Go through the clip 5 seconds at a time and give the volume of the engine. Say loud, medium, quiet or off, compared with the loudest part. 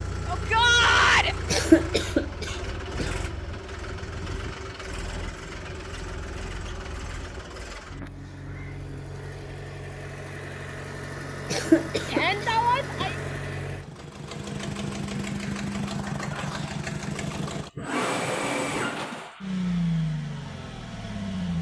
medium, medium, medium, loud, loud.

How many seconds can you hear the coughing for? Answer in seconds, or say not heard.
3 s.